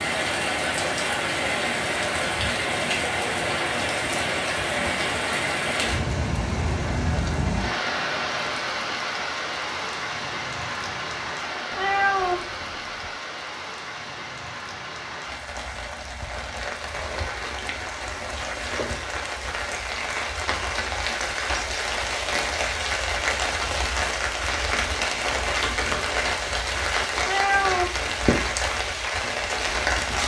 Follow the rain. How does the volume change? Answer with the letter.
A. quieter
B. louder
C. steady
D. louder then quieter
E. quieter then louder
E.